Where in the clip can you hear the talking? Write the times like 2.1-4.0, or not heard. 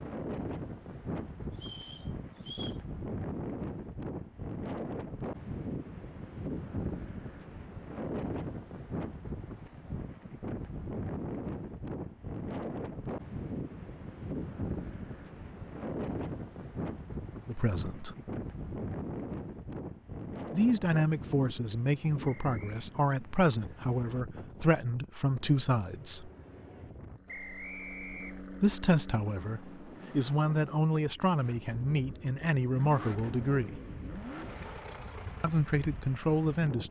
17.4-18.1, 20.5-26.3, 28.6-33.8, 35.4-36.8.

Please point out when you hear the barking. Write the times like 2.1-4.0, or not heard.
not heard.